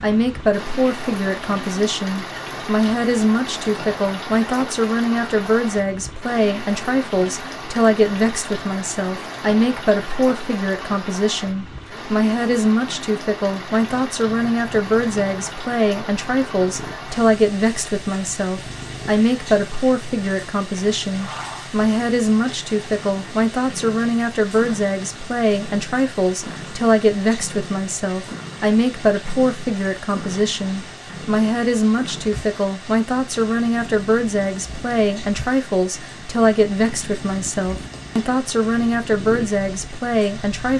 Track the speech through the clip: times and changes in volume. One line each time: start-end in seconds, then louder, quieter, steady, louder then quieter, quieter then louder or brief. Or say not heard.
0.0-40.7 steady.